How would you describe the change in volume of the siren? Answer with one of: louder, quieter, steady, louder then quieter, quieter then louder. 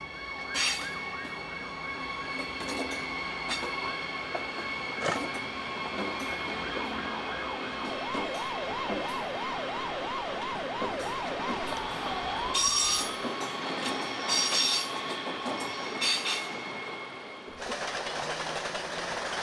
louder.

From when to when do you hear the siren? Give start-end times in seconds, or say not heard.
0.0-13.1.